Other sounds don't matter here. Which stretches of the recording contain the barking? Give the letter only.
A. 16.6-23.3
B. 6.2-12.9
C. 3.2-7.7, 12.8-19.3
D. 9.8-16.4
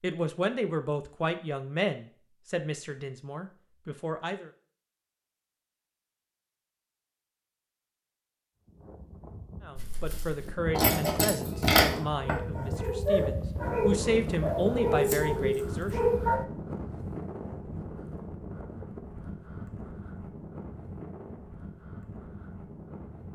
D.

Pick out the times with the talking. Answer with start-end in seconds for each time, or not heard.
0.0-4.5, 9.6-16.1.